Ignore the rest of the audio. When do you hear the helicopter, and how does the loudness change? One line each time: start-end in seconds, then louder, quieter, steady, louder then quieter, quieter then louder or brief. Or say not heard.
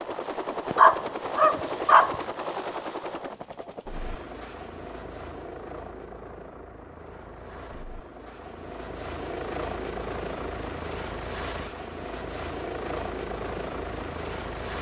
0.0-14.7 quieter then louder.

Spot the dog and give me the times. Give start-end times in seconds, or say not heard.
0.7-2.2.